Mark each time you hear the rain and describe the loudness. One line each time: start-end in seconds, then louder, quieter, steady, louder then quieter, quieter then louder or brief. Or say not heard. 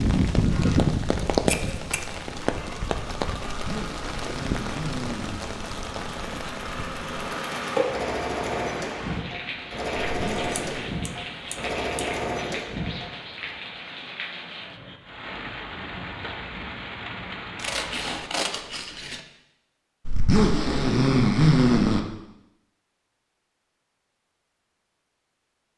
0.0-18.2 quieter.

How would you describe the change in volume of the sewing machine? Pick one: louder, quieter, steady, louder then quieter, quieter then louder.
louder.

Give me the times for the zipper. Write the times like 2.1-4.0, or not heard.
3.5-5.4, 10.1-10.9, 20.1-22.0.